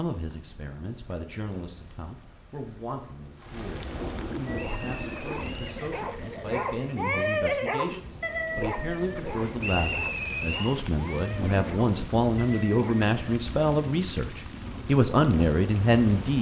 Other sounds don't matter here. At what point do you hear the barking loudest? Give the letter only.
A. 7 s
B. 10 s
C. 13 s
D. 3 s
A.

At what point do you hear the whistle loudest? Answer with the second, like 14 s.
10 s.